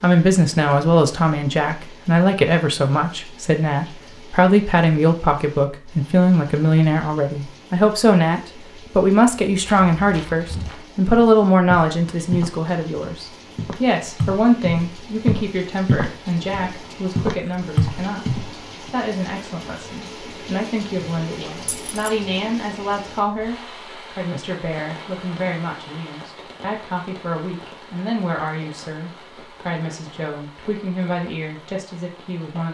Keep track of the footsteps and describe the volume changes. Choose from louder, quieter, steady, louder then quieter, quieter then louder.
louder.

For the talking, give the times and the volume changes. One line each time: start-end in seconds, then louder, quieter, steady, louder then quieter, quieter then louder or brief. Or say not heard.
0.0-32.6 quieter.